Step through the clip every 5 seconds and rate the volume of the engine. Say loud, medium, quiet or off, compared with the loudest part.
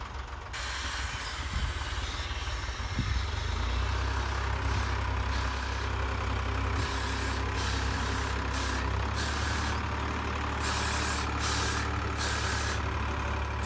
medium, loud, loud.